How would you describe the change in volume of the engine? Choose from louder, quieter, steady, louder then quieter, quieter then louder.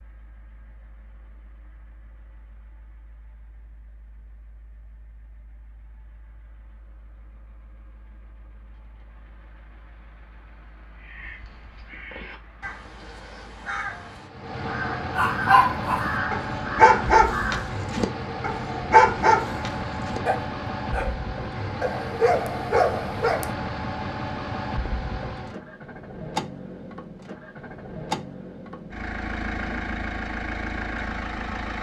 louder.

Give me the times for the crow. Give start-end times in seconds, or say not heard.
10.9-17.8.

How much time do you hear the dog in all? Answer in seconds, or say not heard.
8 s.